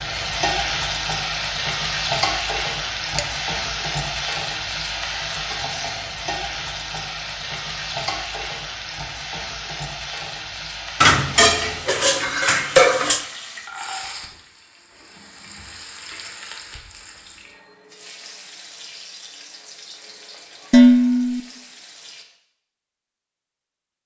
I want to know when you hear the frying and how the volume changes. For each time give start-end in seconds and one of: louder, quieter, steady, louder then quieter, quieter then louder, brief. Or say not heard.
0.0-22.2 quieter.